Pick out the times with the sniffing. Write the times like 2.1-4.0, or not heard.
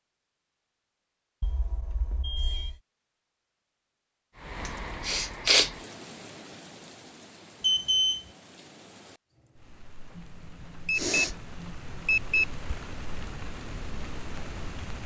4.7-5.7, 10.2-12.5.